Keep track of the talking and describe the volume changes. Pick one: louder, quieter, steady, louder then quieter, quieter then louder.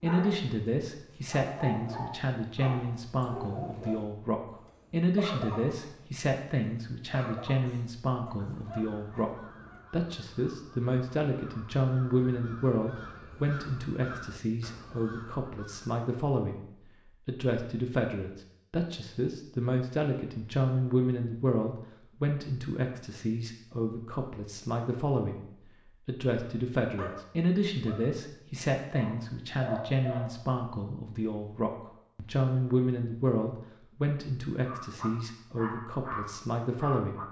steady.